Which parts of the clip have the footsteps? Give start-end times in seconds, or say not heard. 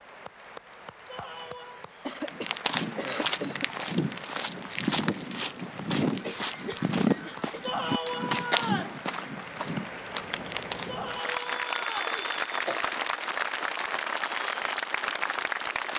2.2-11.8.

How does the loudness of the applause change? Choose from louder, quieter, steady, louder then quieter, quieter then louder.
louder.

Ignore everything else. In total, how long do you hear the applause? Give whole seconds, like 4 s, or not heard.
16 s.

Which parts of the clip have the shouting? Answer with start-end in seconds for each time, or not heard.
1.1-1.9, 7.6-8.9, 10.8-11.9.